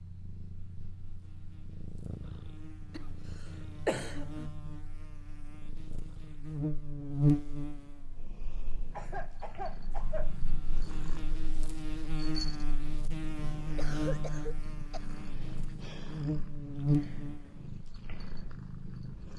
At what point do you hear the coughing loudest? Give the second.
4 s.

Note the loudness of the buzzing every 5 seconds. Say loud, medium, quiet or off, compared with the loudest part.
quiet, loud, medium, loud.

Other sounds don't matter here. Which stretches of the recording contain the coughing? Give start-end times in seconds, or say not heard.
3.9-4.5, 8.9-10.3, 13.8-15.1.